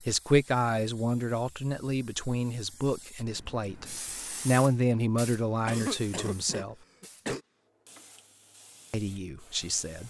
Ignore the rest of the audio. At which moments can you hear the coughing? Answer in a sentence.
The coughing can be heard from 5.7 to 7.4 s.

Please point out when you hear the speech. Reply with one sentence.
You can hear the speech from 0.1 to 6.8 s and from 8.9 to 10.0 s.